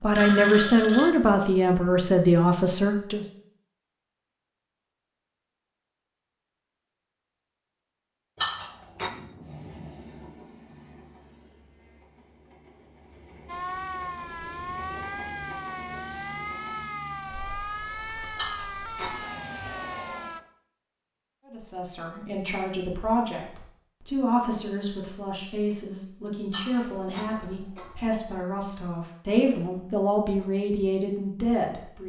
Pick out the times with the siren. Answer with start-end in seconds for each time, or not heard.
13.4-20.4.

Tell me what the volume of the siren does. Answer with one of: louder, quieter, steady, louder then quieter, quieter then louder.
steady.